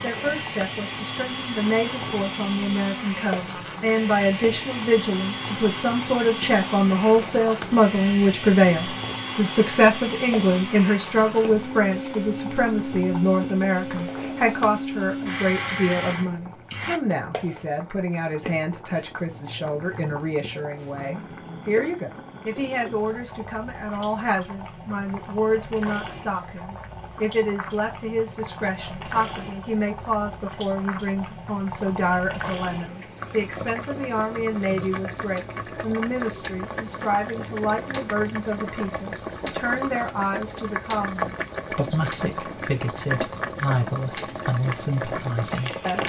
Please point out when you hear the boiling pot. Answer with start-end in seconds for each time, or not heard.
0.0-46.0.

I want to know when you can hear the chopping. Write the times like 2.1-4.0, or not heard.
not heard.